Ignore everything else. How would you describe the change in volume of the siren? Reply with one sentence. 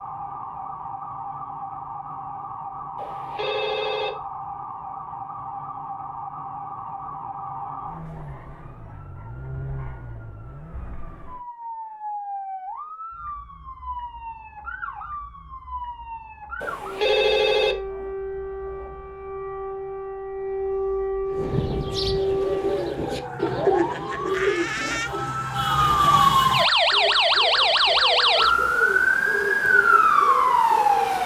The volume of the siren goes up.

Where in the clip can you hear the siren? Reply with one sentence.
You can hear the siren from 0.0 to 31.2 s.